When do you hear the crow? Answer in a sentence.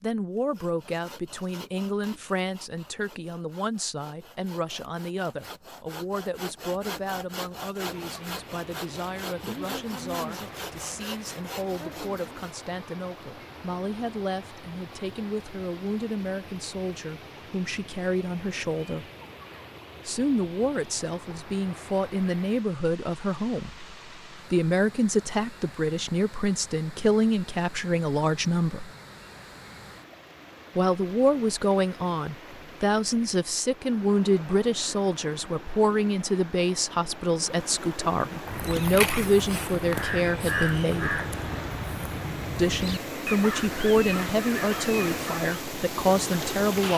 The crow can be heard from 38.5 to 45.5 s.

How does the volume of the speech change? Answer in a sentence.
The volume of the speech goes up.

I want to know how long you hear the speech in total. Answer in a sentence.
You can hear the speech for 43 seconds altogether.